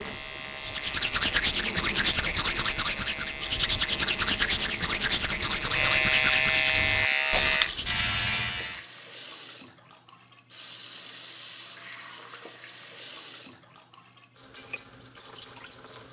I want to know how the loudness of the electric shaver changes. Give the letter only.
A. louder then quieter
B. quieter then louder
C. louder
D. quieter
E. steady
C.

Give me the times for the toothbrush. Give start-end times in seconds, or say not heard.
0.6-8.1.